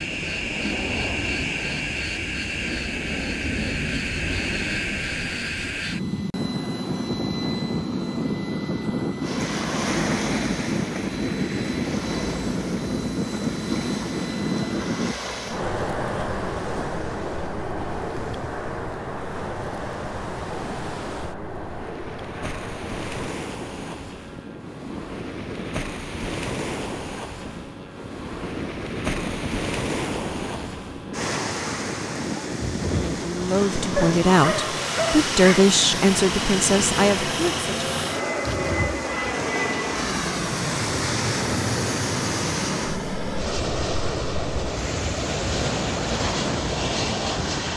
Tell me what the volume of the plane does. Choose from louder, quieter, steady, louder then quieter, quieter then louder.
quieter then louder.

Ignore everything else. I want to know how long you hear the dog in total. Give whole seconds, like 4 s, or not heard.
2 s.